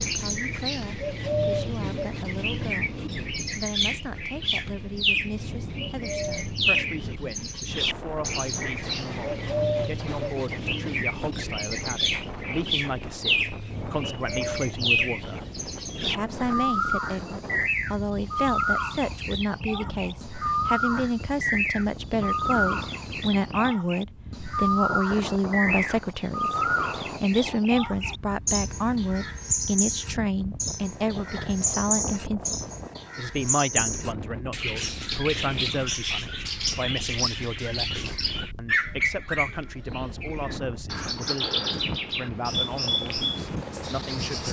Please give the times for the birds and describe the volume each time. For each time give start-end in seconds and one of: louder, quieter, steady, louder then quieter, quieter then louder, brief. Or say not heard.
0.0-44.4 steady.